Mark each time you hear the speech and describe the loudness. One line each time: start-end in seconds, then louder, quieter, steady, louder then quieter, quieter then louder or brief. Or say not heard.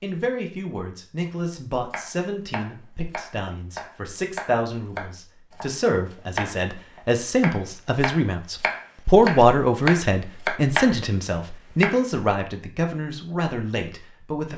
0.0-14.5 louder then quieter.